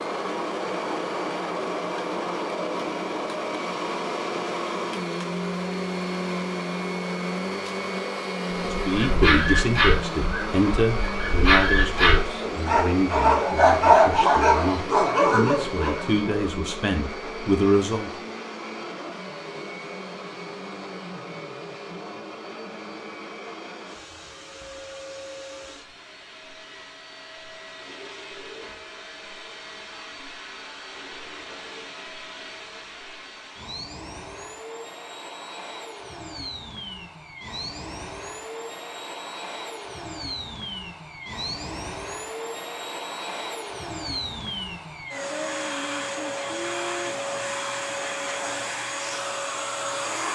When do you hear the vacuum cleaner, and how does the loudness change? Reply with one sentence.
The vacuum cleaner can be heard from 0.0 to 50.3 s, getting quieter then louder.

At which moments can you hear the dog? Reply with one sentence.
You can hear the dog from 8.9 to 16.0 s.